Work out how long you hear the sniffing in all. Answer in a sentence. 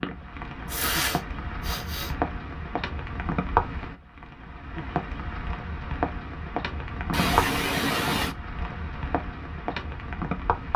The sniffing can be heard for 3 seconds in total.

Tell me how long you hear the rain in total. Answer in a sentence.
The rain can be heard for 11 seconds in total.